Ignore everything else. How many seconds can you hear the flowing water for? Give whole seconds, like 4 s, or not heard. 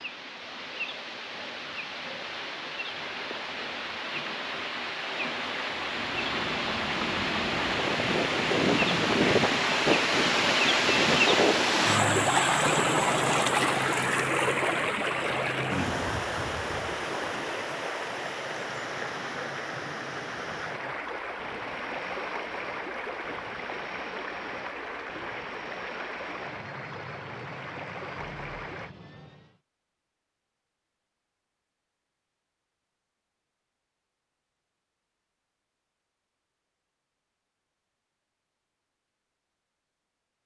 29 s.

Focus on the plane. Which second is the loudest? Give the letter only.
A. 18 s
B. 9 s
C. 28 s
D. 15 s
B.